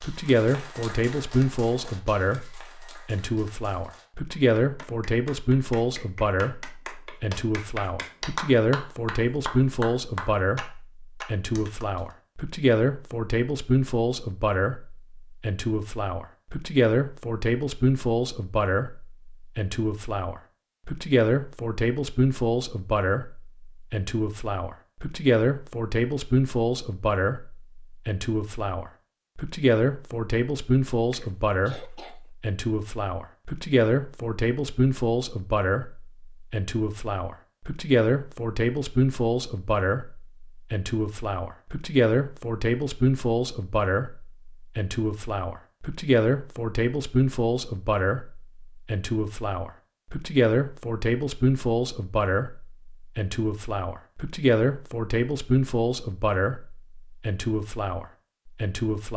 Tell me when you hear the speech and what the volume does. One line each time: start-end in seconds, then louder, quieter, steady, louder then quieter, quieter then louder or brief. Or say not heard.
0.0-59.1 steady.